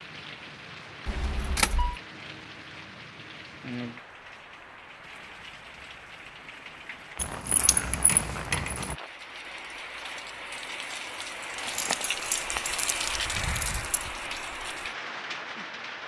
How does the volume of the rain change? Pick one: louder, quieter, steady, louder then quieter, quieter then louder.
louder.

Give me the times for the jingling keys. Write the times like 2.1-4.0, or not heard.
1.1-1.9, 7.2-8.9, 11.7-14.1.